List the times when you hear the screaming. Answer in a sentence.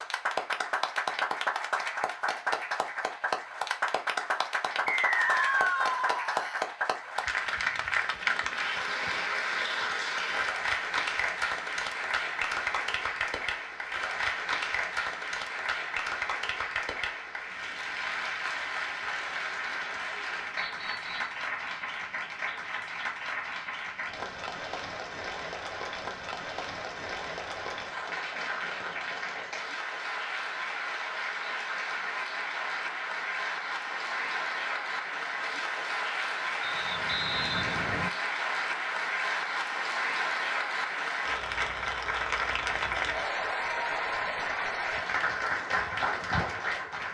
The screaming can be heard from 5.1 to 7.1 s.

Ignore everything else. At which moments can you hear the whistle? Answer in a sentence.
You can hear the whistle from 4.8 to 5.8 s, from 20.6 to 21.4 s and from 36.6 to 38.1 s.